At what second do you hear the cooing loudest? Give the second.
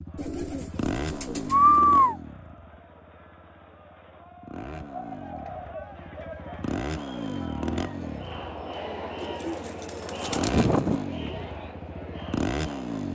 2 s.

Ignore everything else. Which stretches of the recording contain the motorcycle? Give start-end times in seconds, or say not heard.
0.0-13.1.